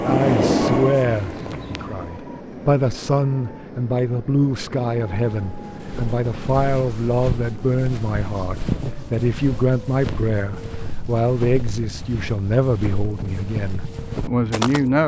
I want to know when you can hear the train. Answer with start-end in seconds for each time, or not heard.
0.0-15.0.